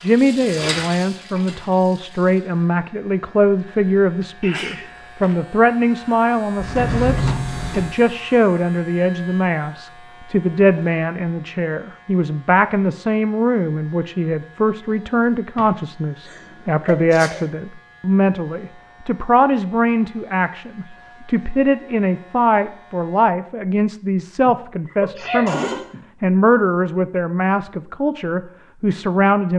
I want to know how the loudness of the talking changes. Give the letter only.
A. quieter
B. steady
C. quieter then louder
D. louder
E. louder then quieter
B.